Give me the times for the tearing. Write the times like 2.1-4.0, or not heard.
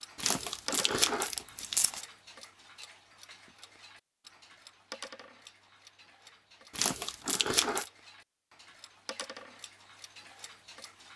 0.1-2.0, 6.8-7.9.